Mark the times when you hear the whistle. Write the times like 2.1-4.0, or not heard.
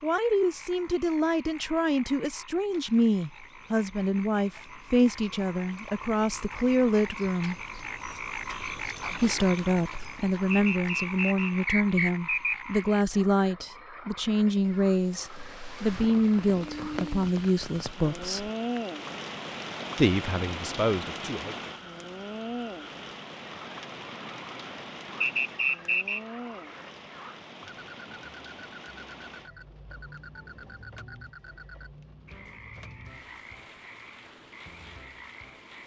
10.5-12.8, 25.2-26.2.